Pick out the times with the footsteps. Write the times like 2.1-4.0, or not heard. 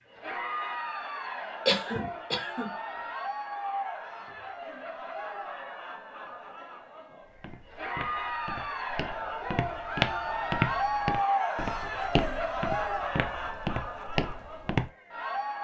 7.2-14.9.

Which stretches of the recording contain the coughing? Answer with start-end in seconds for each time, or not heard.
1.6-2.7.